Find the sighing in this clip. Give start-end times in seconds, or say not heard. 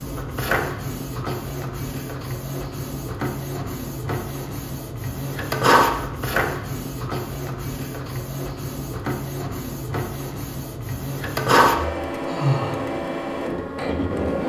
12.1-12.8.